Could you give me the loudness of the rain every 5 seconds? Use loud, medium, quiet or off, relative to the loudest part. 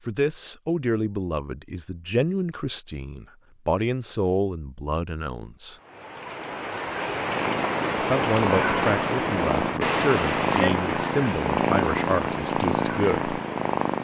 off, loud, loud.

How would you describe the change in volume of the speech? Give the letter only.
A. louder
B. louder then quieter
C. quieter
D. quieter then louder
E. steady
E.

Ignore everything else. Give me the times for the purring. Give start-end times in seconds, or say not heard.
7.2-13.9.